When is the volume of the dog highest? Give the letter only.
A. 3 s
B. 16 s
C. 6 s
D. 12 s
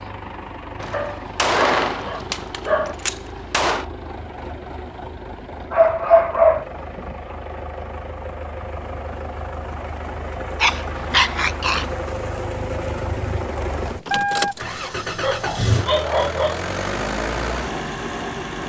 C.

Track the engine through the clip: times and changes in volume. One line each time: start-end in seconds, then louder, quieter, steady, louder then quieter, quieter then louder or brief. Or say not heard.
0.0-18.6 louder.